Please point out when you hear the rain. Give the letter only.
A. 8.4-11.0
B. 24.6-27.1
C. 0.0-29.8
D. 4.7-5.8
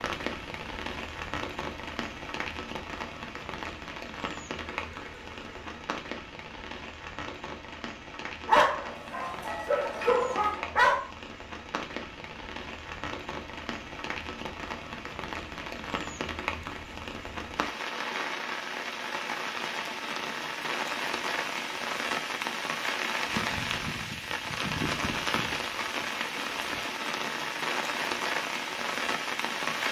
C.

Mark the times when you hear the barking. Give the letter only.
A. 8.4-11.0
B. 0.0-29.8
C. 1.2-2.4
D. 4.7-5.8
A.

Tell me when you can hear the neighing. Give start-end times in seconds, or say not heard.
4.7-5.8.